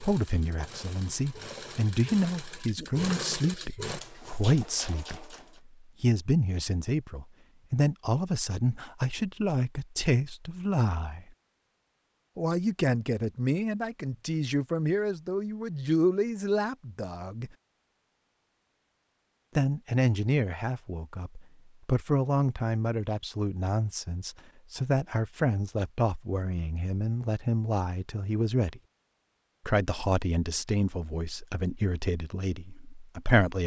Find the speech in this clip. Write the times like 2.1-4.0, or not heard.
0.0-11.2, 12.3-17.5, 19.6-28.8, 29.6-33.6.